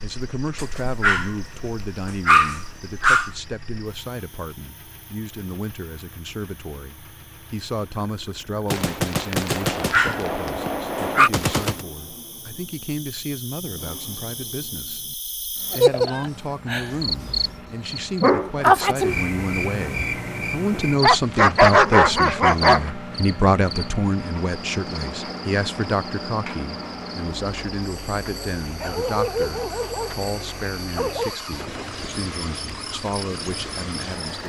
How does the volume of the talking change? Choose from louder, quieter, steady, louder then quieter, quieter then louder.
louder then quieter.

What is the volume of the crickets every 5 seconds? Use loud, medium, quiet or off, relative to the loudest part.
quiet, quiet, quiet, loud, medium, quiet, quiet.